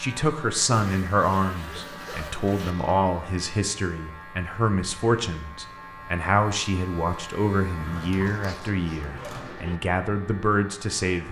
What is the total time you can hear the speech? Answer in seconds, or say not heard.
11 s.